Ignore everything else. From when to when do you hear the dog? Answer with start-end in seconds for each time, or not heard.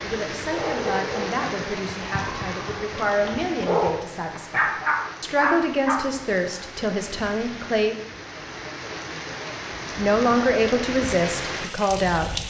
0.5-6.0.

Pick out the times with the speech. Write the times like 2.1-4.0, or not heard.
0.0-8.0, 9.9-12.4.